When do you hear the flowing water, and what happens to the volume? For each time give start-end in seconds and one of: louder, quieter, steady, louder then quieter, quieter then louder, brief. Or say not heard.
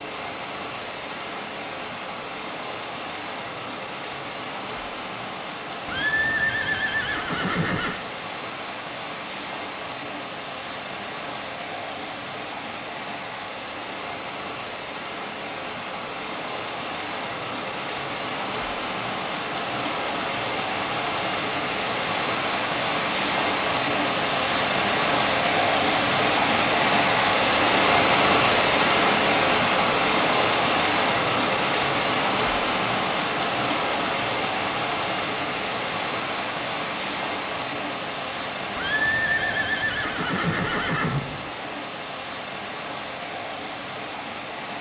0.0-44.7 louder then quieter.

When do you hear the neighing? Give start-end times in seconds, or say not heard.
5.8-8.0, 38.8-41.5.